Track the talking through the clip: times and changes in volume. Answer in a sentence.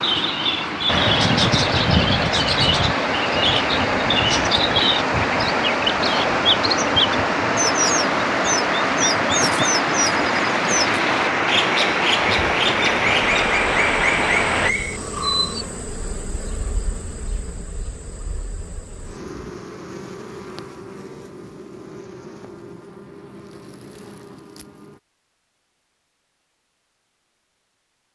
The talking can't be heard in this clip.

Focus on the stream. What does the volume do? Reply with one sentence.
The volume of the stream stays about the same.